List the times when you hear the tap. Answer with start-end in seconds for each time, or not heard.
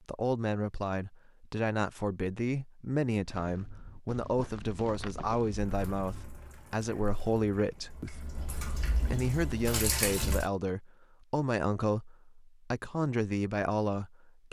5.5-10.4.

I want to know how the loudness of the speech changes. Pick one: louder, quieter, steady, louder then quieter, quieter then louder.
steady.